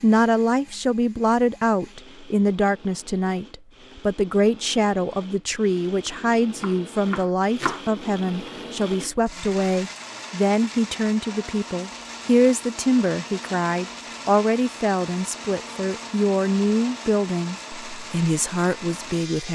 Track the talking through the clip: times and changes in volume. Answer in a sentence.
The talking can be heard from 0.0 to 19.5 s, at a steady volume.